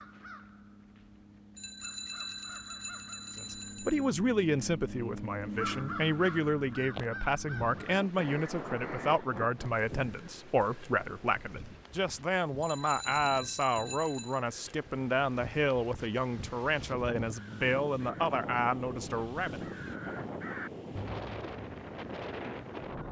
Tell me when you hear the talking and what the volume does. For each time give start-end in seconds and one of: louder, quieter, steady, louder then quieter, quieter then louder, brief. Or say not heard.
3.4-19.6 steady.